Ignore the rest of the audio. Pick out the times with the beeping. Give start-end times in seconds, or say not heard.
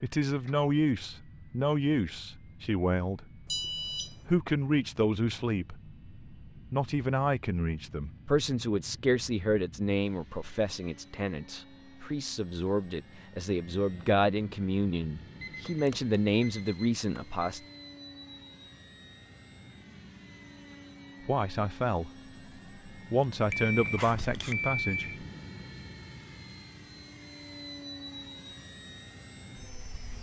3.5-4.2, 15.4-17.6, 23.4-25.2.